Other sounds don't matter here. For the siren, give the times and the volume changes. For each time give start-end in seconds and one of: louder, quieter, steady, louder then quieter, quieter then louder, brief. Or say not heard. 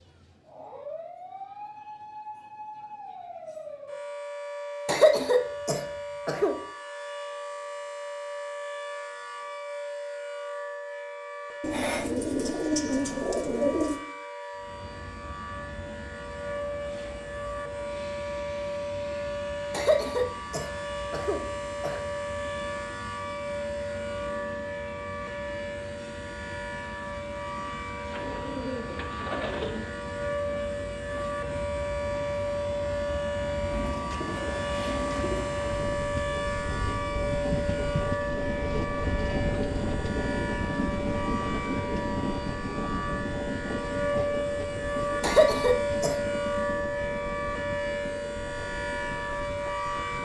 0.0-50.2 louder.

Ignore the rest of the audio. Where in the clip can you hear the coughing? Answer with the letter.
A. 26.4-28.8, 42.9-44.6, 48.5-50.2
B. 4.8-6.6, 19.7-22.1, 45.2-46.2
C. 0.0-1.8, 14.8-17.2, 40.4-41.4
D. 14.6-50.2
B.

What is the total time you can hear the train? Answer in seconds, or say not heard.
36 s.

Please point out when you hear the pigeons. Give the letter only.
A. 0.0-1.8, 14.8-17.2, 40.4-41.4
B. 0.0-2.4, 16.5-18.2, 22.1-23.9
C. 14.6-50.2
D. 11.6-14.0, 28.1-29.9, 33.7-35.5
D.